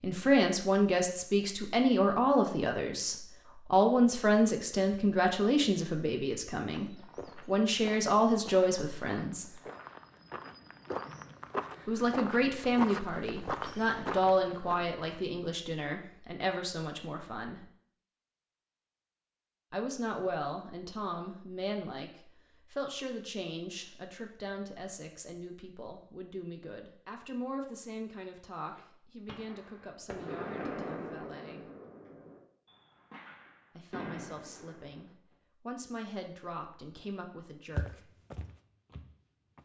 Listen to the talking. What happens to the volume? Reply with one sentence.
The volume of the talking goes down.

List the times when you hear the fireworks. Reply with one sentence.
The fireworks can be heard from 28.7 to 35.1 s.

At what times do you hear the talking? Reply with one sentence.
You can hear the talking from 0.0 to 9.4 s, from 11.8 to 17.6 s, from 19.7 to 31.6 s and from 33.8 to 38.1 s.